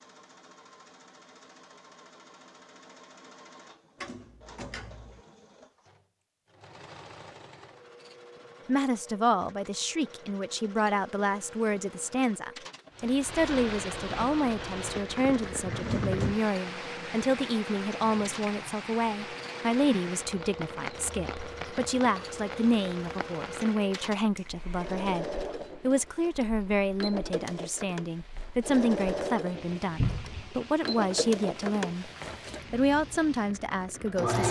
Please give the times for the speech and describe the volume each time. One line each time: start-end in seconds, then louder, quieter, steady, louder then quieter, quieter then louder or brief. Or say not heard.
8.7-32.1 steady
32.7-34.4 brief.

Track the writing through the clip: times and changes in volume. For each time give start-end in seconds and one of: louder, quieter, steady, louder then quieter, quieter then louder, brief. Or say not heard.
not heard.